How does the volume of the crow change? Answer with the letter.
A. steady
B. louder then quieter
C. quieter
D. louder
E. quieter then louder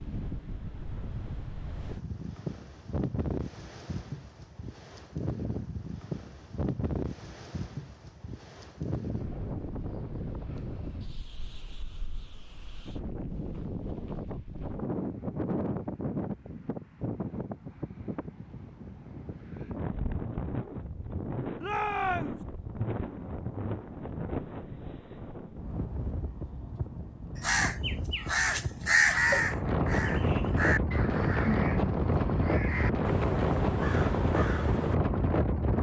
C.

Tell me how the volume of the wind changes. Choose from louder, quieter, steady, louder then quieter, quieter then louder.
louder.